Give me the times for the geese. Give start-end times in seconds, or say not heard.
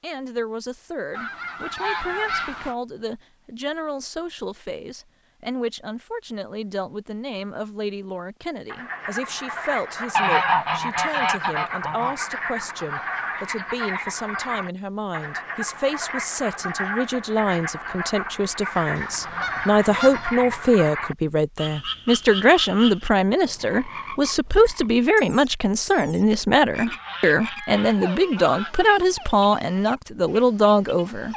1.1-2.8, 10.1-12.2, 18.9-20.7, 26.9-28.9.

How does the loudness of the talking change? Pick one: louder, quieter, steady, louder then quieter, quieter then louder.
louder.